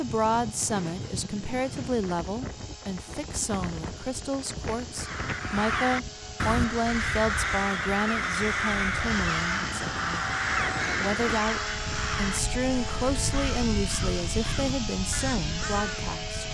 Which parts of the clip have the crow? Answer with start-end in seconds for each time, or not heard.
5.0-16.0.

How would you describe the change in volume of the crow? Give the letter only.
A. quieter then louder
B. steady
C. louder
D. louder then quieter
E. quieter
E.